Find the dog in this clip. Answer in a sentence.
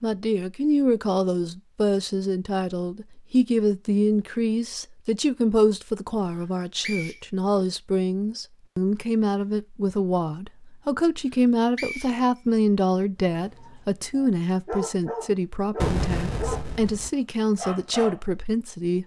The dog can be heard from 13.3 to 16.6 s and from 17.6 to 18.2 s.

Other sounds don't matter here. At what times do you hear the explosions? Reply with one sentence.
You can hear the explosions from 15.8 to 17.1 s.